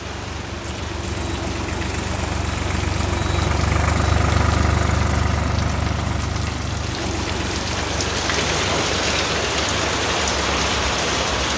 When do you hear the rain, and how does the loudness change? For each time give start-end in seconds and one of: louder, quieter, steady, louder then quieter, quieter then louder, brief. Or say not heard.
0.0-11.5 louder.